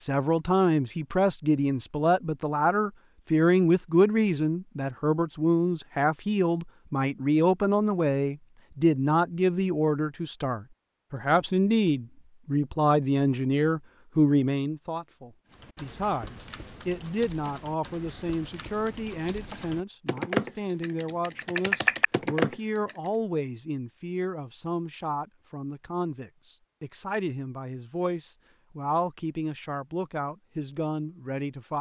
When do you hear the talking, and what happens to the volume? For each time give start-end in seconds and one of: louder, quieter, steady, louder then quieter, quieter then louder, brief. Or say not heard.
0.0-31.7 quieter.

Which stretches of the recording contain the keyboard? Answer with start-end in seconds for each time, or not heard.
15.5-23.1.